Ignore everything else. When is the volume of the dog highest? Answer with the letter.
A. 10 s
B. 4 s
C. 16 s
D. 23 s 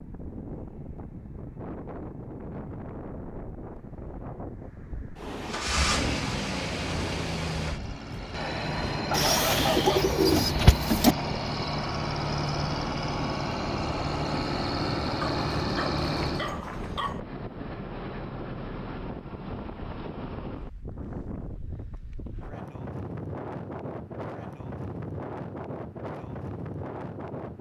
A.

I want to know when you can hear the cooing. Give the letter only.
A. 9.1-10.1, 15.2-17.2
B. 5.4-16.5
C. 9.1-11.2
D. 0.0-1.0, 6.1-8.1
C.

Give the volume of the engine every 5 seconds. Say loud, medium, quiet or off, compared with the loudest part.
off, loud, loud, loud, off, off.